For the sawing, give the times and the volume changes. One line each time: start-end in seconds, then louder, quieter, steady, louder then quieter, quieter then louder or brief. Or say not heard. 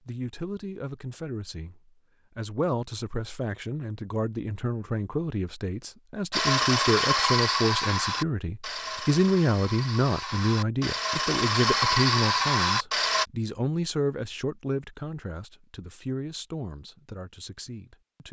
6.3-13.2 quieter then louder.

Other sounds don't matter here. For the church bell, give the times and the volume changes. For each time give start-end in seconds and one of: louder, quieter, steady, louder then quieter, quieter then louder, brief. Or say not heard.
not heard.